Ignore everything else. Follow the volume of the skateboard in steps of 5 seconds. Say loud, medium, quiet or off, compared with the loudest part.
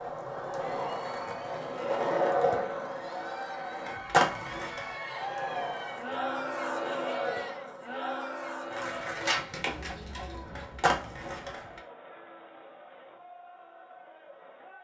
loud, medium, loud.